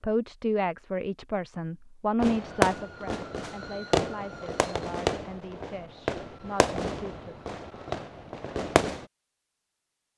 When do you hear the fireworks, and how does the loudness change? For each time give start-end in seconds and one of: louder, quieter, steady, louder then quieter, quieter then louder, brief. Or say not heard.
2.2-9.1 quieter.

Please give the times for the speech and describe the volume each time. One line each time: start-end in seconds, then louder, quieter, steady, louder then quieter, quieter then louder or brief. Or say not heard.
0.0-7.3 quieter.